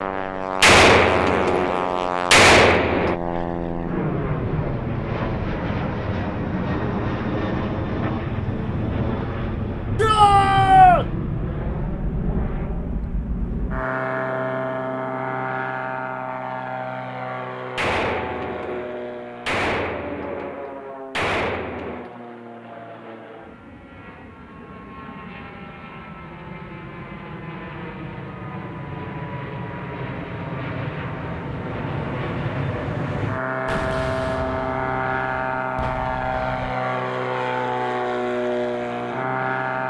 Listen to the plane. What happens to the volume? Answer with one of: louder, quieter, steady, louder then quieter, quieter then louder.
quieter then louder.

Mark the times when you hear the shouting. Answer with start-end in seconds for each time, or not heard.
9.9-11.1.